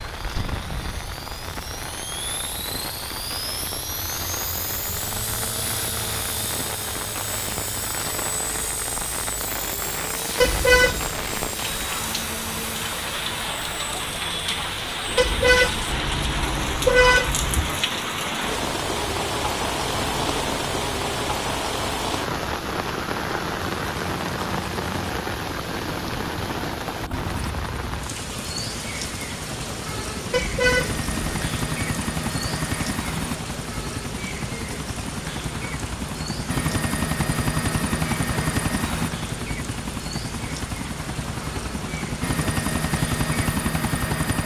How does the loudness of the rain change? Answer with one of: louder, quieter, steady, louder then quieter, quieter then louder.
louder then quieter.